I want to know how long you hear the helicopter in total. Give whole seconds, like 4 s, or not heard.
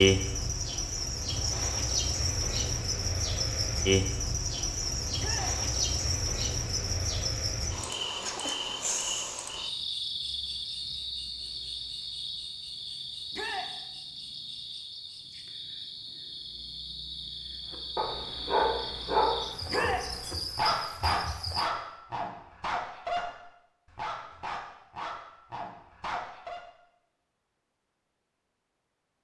not heard.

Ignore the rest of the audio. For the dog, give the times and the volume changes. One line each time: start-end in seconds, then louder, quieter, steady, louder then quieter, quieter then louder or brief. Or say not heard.
17.7-26.6 quieter.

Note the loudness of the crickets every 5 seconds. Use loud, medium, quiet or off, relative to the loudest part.
loud, loud, medium, medium, medium, off.